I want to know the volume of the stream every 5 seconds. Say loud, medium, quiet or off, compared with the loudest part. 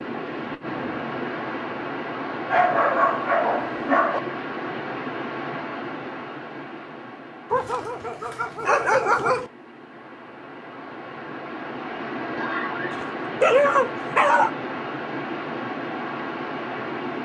loud, medium, loud, loud.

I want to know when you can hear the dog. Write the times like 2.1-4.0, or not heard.
2.5-4.2, 7.5-9.5, 12.9-14.5.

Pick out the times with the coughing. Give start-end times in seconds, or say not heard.
12.3-13.1.